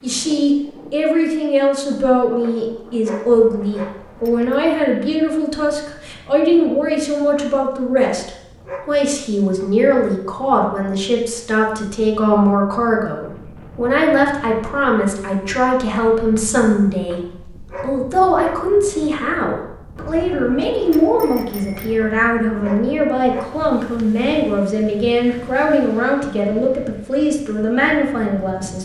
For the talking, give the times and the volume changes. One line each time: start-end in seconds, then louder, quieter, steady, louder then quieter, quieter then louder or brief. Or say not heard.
0.0-28.8 steady.